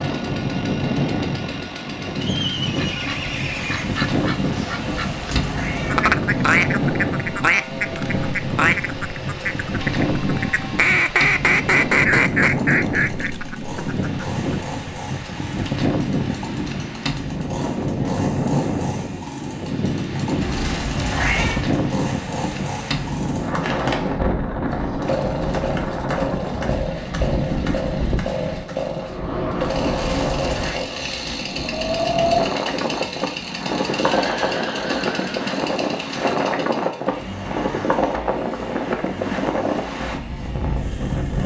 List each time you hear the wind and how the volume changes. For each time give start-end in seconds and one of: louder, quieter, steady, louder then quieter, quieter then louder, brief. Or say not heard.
0.0-41.4 steady.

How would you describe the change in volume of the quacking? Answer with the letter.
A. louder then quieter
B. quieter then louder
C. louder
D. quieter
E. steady
C.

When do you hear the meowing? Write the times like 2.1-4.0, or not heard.
5.0-6.1, 20.4-21.6, 29.9-30.9.